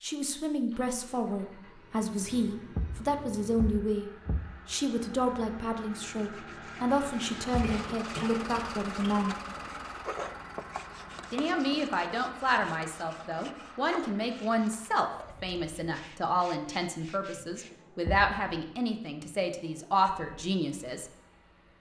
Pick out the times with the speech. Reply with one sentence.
The speech can be heard from 0.0 to 9.3 s and from 11.3 to 21.1 s.